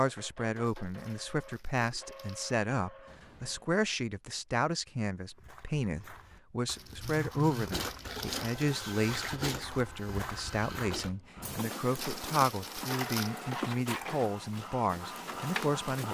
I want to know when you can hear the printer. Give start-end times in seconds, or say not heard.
0.0-3.7, 7.4-16.0.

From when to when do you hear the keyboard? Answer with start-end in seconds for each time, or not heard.
not heard.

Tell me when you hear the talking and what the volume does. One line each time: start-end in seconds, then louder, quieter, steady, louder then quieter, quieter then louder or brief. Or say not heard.
0.0-16.0 steady.